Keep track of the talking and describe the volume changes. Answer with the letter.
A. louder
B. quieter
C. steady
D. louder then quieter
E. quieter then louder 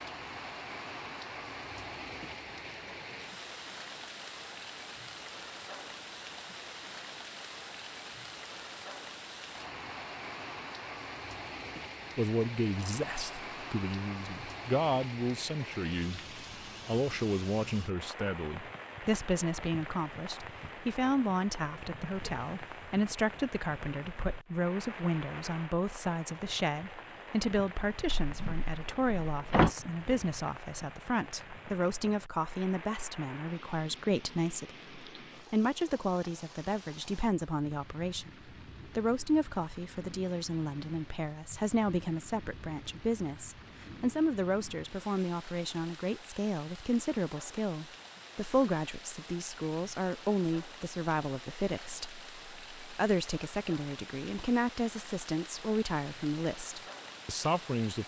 C.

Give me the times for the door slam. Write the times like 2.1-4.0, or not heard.
28.1-29.7.